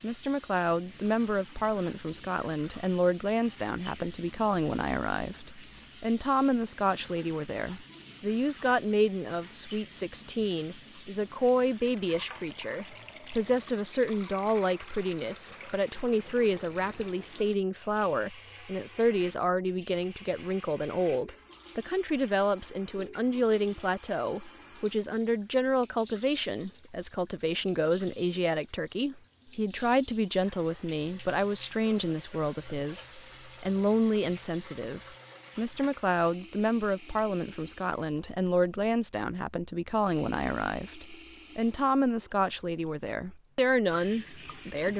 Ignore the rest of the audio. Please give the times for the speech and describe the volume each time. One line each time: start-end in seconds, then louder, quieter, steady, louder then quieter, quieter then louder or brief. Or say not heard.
0.0-44.9 steady.